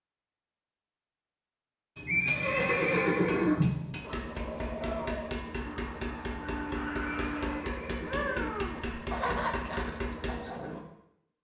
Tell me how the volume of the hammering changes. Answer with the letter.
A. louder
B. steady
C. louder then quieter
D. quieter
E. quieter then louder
B.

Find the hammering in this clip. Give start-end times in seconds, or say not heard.
1.9-10.8.